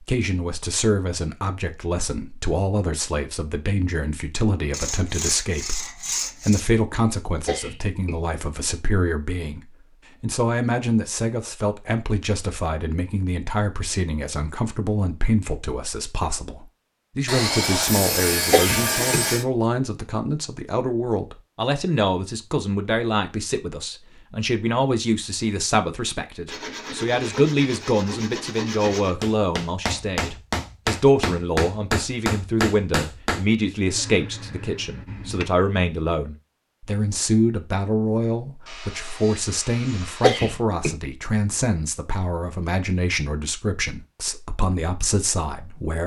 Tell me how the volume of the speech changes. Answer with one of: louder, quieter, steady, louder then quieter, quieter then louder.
steady.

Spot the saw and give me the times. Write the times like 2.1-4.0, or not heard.
4.7-6.7, 17.2-19.4, 26.4-29.1, 38.6-40.5.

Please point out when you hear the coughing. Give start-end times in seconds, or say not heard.
7.5-8.2, 18.5-19.2, 40.2-40.9.